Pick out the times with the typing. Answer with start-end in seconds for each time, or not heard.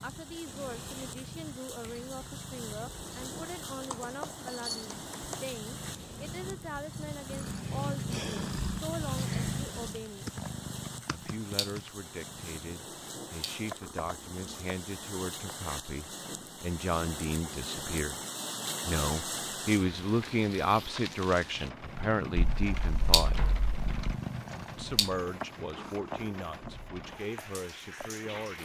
3.9-5.4, 10.2-11.8, 22.4-24.2.